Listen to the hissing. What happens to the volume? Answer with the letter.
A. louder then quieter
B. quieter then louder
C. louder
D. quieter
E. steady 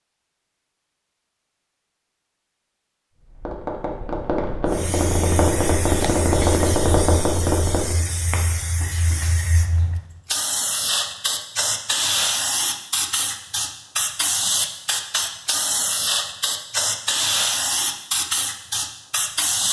C.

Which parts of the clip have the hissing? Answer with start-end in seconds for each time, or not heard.
4.7-19.6.